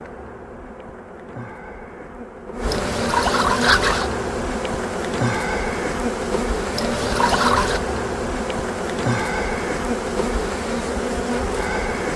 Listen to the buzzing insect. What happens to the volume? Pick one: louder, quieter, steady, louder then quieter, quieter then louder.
louder.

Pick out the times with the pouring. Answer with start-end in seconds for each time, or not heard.
2.6-4.1, 6.7-7.8.